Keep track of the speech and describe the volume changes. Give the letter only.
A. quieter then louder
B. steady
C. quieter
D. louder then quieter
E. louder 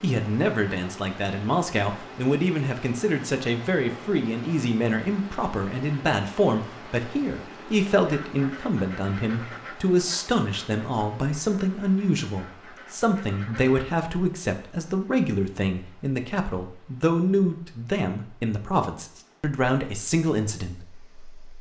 B.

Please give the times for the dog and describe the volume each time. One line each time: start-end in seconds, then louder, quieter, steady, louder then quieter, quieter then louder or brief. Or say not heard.
not heard.